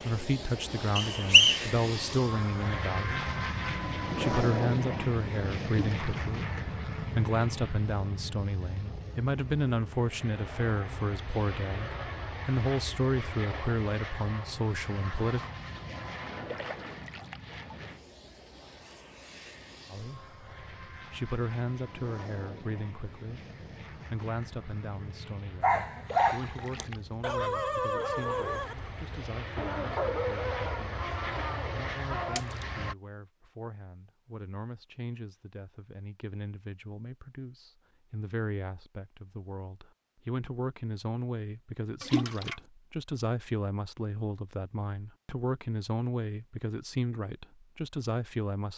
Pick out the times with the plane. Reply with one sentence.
You can hear the plane from 0.0 to 33.0 s.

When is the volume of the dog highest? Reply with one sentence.
The loudest moment of the dog is at 26 seconds.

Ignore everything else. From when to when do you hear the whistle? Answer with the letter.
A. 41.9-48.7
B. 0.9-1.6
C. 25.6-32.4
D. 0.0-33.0
B.